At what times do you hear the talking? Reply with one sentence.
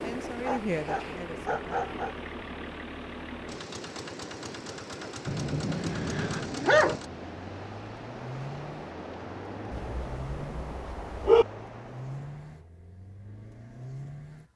You can hear the talking from 0.0 to 1.9 s.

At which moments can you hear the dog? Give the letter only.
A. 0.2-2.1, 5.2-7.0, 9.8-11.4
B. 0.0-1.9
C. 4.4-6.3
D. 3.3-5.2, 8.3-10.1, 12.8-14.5
A.